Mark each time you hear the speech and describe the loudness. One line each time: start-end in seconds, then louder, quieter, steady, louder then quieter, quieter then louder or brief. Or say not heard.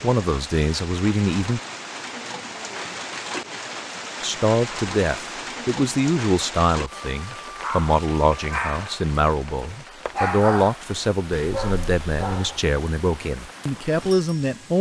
0.0-1.6 brief
4.2-14.7 steady.